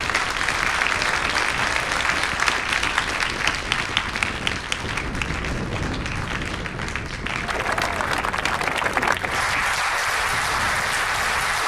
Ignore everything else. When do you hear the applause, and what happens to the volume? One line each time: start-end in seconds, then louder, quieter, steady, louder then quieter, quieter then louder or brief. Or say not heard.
0.0-11.6 quieter then louder.